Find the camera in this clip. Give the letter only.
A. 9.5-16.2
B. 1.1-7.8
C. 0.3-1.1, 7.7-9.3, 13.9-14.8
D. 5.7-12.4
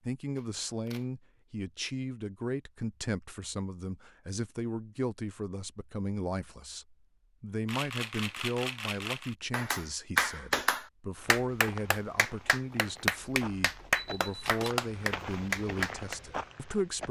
C.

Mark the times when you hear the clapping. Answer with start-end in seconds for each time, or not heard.
9.5-16.2.